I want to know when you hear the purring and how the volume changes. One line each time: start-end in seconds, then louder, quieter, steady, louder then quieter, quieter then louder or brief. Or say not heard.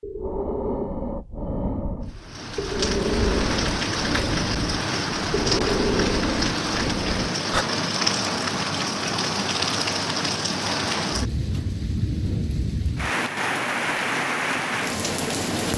not heard.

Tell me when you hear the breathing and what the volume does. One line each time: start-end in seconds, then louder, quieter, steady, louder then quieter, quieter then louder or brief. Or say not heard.
0.0-7.7 steady.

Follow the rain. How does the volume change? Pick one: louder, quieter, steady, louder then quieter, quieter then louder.
steady.